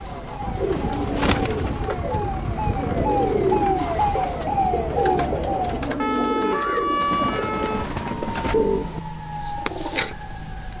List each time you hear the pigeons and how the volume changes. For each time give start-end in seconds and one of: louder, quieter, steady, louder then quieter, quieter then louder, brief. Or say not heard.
0.6-10.2 steady.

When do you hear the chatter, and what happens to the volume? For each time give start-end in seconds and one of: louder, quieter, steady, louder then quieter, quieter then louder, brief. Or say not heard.
not heard.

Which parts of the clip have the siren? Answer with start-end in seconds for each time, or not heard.
0.0-10.7.